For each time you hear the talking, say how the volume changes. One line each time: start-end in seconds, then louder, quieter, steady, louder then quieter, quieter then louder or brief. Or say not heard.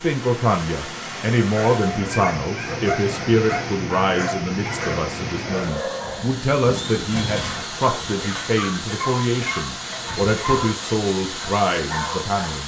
0.0-12.6 steady.